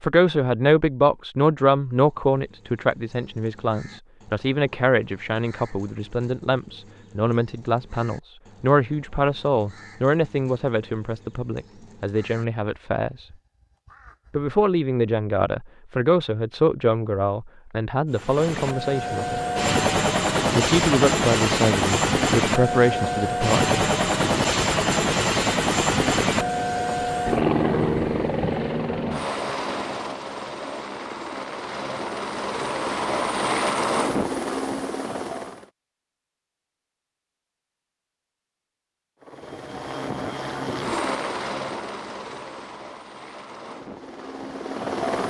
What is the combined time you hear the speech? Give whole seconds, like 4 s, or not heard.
22 s.